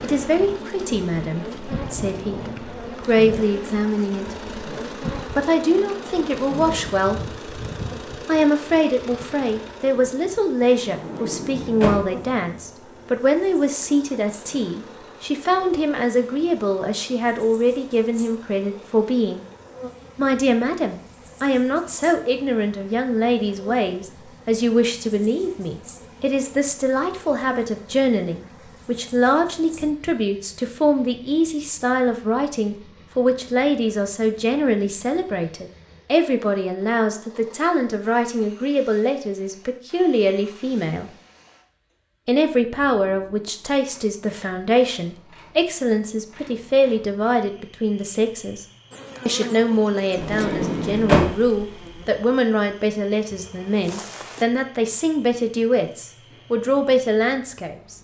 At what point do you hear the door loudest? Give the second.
51 s.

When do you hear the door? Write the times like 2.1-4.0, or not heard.
10.8-12.1, 50.1-51.4.